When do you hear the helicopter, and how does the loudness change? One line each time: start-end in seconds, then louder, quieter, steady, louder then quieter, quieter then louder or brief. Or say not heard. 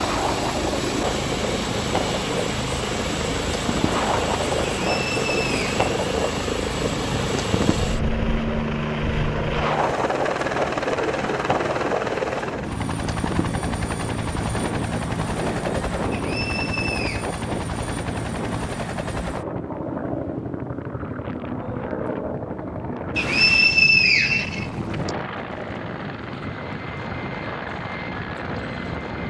0.0-29.2 quieter.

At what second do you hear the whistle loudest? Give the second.
24 s.